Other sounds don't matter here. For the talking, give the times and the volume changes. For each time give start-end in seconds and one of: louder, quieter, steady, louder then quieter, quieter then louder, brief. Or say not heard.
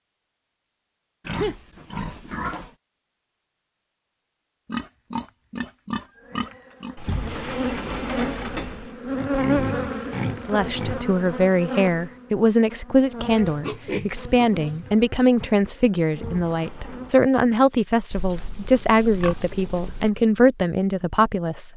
10.4-21.7 steady.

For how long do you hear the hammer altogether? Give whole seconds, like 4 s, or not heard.
not heard.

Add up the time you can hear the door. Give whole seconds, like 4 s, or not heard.
3 s.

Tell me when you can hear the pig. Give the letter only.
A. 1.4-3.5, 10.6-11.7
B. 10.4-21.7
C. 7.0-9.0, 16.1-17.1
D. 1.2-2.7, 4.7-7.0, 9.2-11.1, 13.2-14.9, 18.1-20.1
D.